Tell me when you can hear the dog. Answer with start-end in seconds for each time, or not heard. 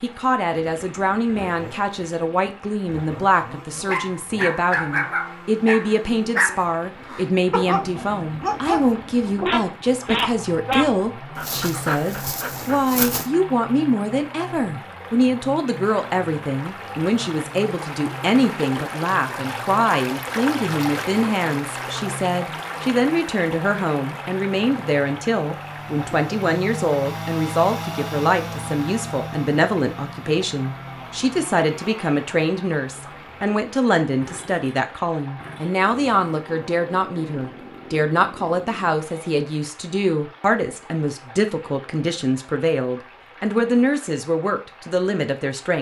3.3-13.3.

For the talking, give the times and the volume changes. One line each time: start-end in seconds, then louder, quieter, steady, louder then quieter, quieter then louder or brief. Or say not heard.
0.0-45.7 steady.